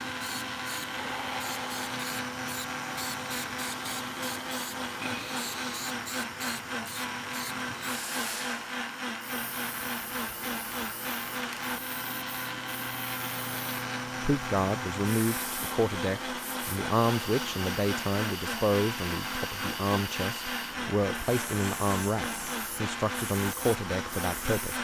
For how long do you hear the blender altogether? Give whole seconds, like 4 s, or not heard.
25 s.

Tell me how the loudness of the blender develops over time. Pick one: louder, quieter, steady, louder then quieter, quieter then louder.
steady.